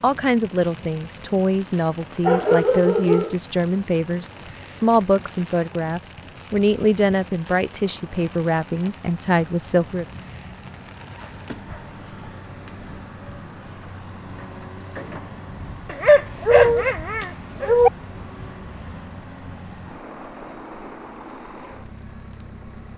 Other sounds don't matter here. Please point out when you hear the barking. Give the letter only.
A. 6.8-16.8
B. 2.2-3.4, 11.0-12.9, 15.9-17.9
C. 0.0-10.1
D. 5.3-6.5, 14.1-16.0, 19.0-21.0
B.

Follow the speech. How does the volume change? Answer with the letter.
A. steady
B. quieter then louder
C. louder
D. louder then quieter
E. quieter
A.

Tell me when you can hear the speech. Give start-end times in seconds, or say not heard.
0.0-10.1.